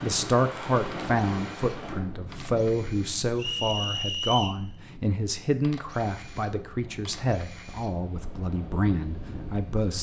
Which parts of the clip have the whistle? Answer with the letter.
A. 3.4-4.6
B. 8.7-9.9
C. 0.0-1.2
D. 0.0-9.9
A.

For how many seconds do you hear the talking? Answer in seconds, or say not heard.
10 s.